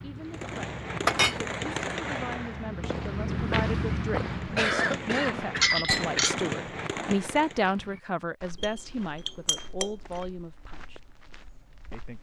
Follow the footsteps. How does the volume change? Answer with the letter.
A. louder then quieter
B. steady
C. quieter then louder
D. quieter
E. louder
A.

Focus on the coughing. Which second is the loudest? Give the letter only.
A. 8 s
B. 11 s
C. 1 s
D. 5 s
D.